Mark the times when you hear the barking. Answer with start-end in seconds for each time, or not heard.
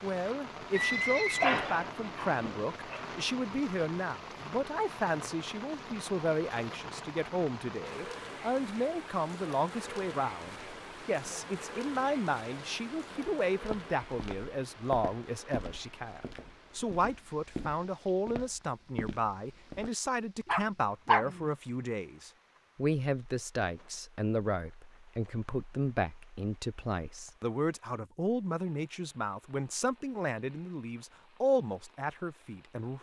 1.4-3.2, 20.4-21.4.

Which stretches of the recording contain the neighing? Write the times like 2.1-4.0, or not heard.
0.8-1.6.